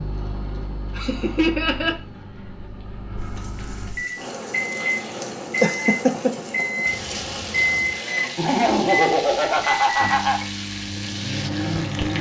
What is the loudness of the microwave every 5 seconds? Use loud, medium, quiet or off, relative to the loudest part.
medium, loud, loud.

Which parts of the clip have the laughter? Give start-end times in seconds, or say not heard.
0.9-1.9, 5.6-6.3, 8.3-10.4.